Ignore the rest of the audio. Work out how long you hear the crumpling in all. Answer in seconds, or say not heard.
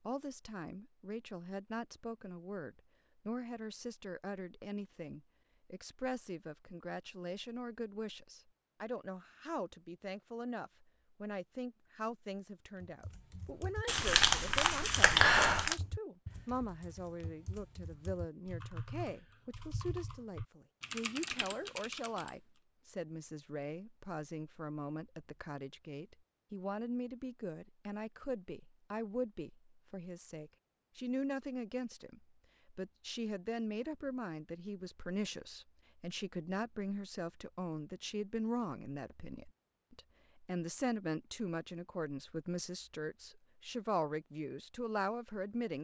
2 s.